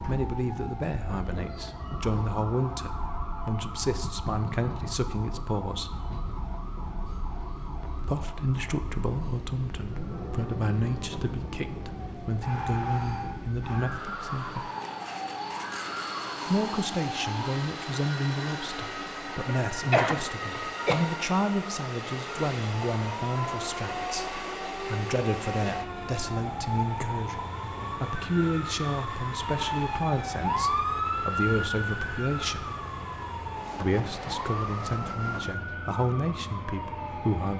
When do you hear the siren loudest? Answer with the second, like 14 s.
31 s.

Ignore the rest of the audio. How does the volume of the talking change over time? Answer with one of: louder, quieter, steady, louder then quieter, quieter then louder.
steady.